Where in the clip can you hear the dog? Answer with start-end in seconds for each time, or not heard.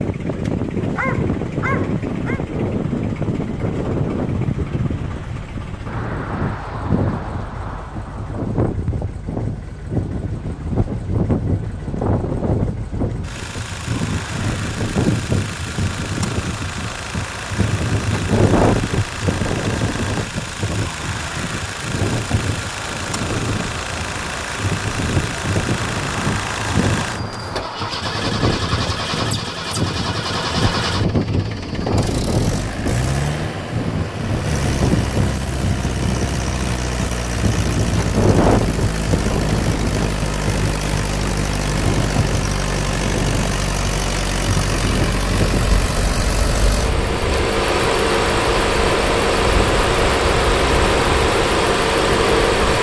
0.8-2.4.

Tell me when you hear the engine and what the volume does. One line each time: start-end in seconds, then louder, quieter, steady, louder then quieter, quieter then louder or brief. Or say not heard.
0.0-52.7 louder.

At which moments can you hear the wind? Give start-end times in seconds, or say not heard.
0.0-52.7.